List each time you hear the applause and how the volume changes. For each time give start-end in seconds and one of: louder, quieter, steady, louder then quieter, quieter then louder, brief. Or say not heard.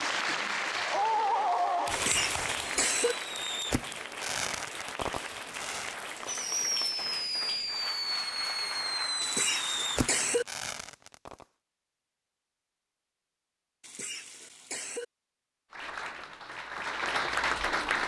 0.0-10.4 quieter
15.7-18.0 brief.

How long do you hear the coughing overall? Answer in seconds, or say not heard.
4 s.